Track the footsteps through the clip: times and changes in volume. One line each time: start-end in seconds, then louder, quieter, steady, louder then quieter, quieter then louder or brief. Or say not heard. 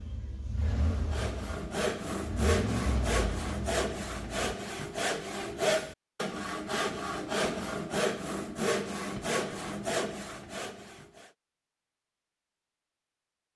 not heard.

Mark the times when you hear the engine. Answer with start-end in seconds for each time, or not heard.
0.0-4.5.